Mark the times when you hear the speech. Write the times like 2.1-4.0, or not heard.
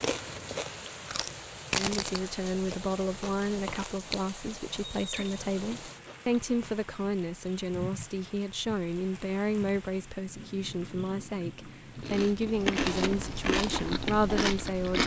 1.8-15.0.